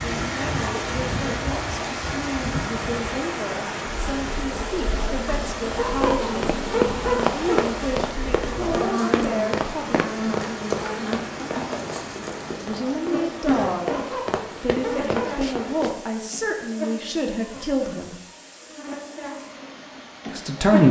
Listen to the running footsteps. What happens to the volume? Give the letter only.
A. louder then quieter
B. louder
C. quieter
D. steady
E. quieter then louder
E.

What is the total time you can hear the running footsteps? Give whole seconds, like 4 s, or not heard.
10 s.